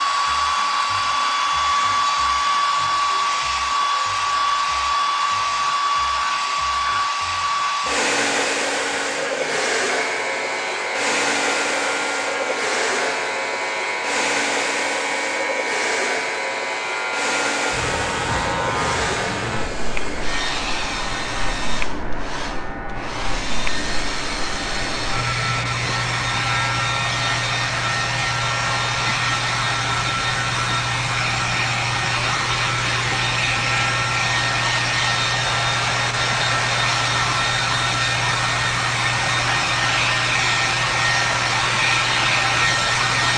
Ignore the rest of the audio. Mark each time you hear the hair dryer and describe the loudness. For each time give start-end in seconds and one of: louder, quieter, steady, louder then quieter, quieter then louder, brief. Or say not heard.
0.0-43.3 quieter then louder.